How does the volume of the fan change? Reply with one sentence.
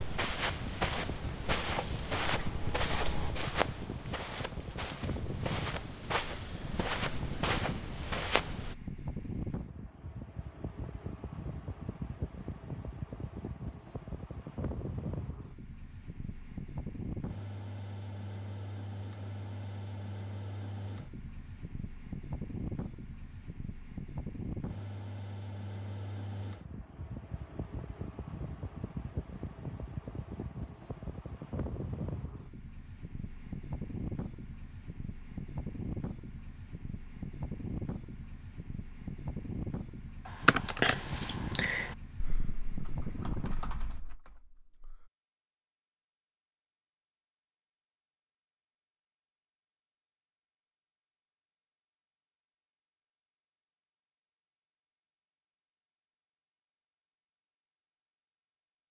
The loudness of the fan stays about the same.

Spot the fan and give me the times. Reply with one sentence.
The fan can be heard from 0.0 to 44.0 s.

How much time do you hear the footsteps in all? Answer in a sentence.
You can hear the footsteps for 9 seconds altogether.